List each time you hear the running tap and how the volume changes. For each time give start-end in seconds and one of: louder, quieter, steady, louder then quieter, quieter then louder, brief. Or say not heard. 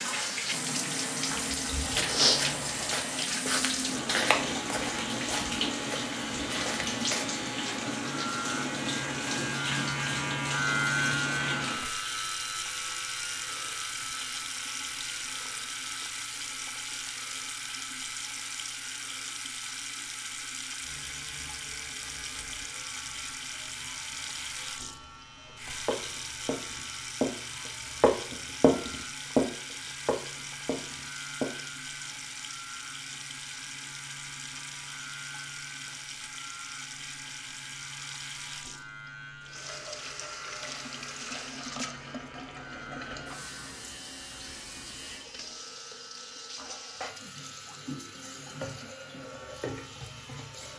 0.0-50.7 quieter.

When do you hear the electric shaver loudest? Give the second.
11 s.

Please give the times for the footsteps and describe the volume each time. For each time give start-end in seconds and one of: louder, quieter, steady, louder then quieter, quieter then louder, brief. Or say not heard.
1.3-7.2 quieter
25.9-27.3 brief
28.0-29.4 brief
30.1-31.4 brief.